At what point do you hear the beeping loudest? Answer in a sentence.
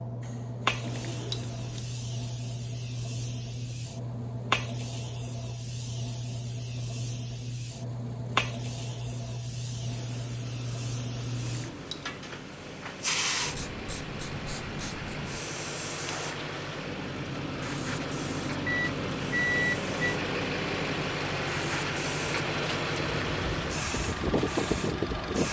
The volume of the beeping peaks at 20 seconds.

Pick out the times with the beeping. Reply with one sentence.
You can hear the beeping from 0.8 to 1.9 s, from 11.4 to 12.1 s and from 18.6 to 20.1 s.